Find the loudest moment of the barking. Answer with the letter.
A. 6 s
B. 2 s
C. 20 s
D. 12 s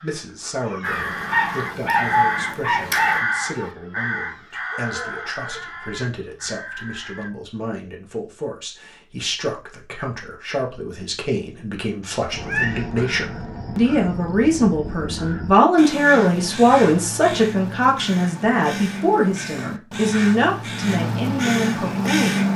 B.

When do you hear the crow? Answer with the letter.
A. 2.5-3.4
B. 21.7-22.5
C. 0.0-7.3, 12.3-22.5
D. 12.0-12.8
C.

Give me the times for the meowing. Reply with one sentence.
You can hear the meowing from 12.0 to 12.8 s.